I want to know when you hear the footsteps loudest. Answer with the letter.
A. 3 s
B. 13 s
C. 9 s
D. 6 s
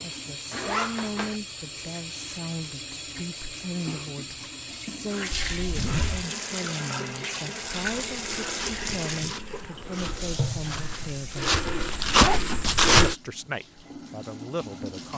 B.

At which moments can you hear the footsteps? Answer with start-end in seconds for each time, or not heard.
7.8-13.2.